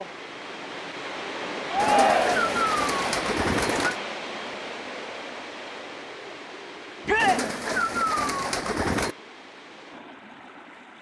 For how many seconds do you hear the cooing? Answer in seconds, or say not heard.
4 s.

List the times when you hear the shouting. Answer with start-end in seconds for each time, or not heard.
1.7-2.5, 7.0-7.5.